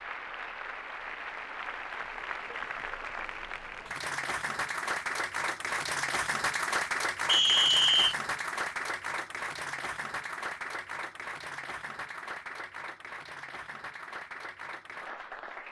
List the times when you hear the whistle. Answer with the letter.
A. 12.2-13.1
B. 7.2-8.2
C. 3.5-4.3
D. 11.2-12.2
B.